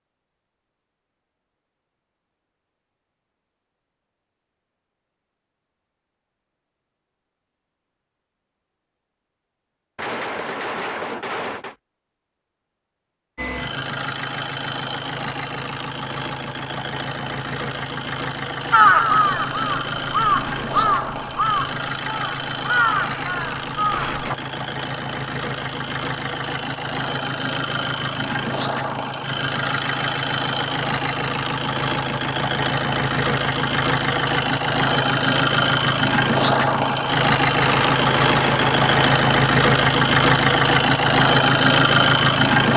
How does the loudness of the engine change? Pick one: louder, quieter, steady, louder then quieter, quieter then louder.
louder.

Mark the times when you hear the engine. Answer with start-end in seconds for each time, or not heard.
13.3-42.7.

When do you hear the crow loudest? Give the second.
19 s.